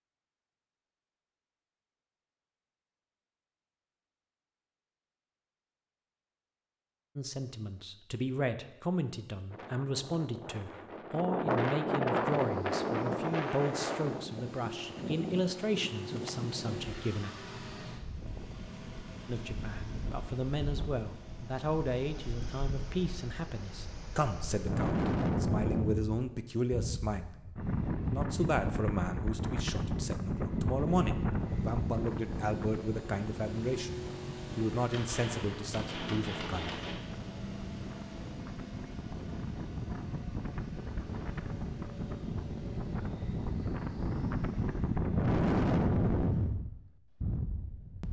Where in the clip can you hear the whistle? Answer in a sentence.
You can't hear the whistle here.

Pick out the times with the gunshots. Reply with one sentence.
You can hear the gunshots from 34.9 to 37.0 s.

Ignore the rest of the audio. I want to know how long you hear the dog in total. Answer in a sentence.
You can't hear the dog here.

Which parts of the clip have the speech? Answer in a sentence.
The speech can be heard from 7.2 to 17.3 s, from 19.2 to 27.4 s and from 28.1 to 36.6 s.